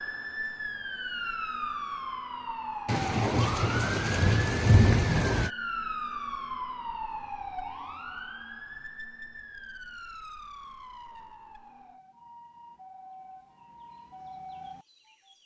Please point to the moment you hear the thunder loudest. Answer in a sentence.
The volume of the thunder peaks at 5 seconds.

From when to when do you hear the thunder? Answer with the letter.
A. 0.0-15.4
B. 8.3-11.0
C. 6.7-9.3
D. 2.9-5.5
D.